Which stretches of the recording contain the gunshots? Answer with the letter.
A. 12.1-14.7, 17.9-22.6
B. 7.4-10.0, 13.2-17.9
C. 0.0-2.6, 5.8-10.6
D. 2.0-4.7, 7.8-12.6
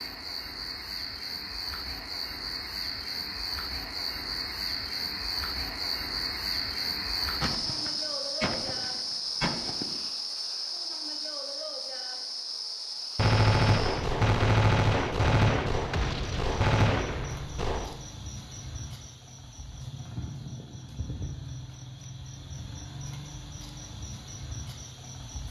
B.